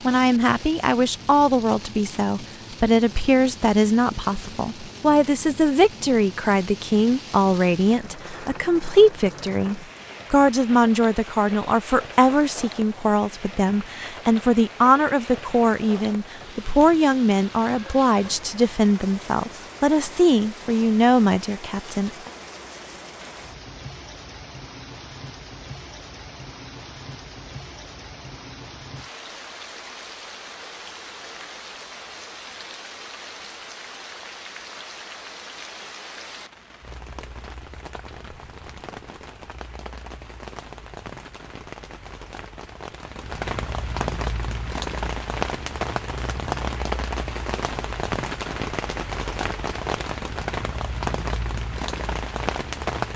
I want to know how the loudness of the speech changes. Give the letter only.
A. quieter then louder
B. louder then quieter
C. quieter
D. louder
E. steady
E.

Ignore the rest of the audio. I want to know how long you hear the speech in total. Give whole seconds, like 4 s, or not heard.
22 s.